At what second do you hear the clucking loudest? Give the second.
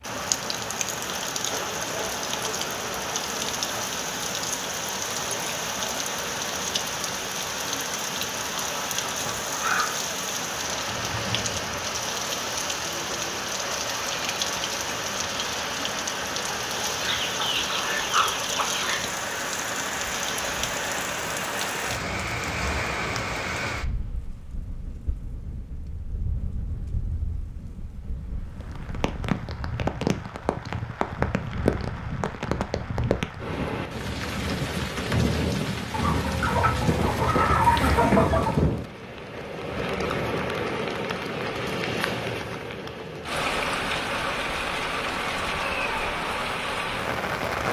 38 s.